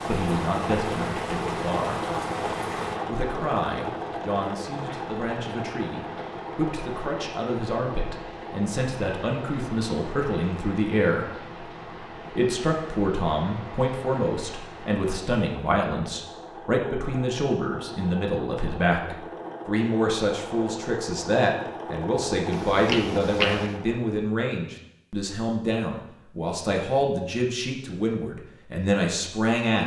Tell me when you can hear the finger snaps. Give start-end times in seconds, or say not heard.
22.5-23.8.